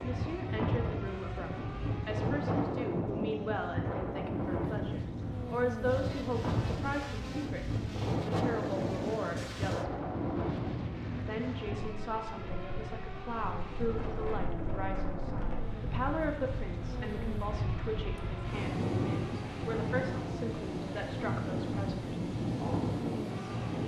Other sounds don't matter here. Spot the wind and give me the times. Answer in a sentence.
You can hear the wind from 0.0 to 23.8 s.